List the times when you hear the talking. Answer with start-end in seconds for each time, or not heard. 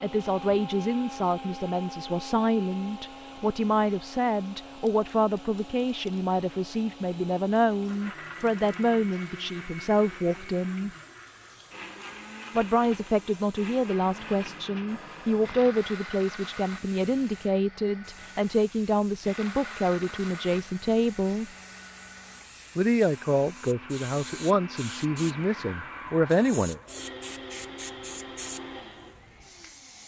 0.0-10.9, 12.6-21.4, 22.8-26.8.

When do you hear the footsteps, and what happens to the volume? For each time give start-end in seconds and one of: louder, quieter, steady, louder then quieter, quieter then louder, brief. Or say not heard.
not heard.